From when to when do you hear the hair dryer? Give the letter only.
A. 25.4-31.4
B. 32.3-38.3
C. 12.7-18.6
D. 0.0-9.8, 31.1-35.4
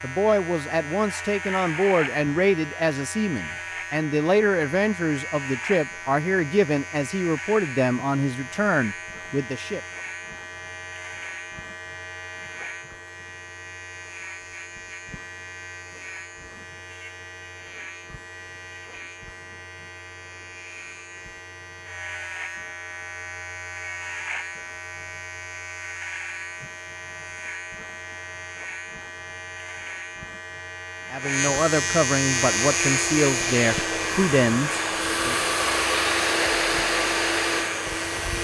B.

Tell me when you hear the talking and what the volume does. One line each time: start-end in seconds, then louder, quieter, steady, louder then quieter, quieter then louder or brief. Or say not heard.
0.0-9.8 steady
31.1-35.4 steady.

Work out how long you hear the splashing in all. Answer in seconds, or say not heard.
not heard.